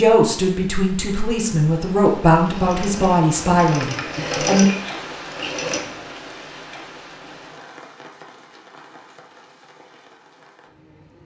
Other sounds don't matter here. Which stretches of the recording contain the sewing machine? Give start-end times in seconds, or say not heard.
2.5-5.8.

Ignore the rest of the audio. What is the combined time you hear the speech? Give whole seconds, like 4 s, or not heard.
5 s.